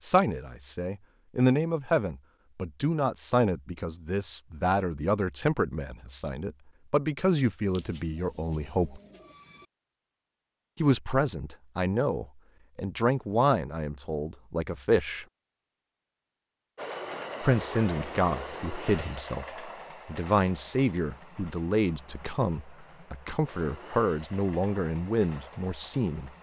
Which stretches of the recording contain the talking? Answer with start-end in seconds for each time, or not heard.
0.0-9.0, 10.8-15.2, 17.4-26.3.